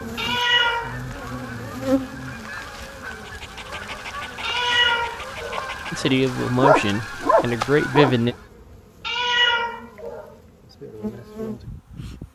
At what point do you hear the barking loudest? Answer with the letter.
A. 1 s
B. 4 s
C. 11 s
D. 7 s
D.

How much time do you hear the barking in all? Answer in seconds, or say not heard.
5 s.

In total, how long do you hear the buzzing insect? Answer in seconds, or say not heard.
12 s.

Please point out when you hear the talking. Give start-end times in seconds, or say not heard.
5.9-8.3.